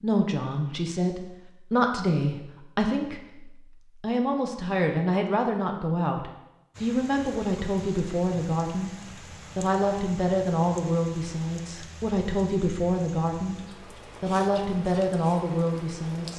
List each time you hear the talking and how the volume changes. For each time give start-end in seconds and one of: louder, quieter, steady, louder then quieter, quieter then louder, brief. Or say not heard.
0.0-8.9 steady
9.6-13.6 quieter then louder
14.2-16.3 brief.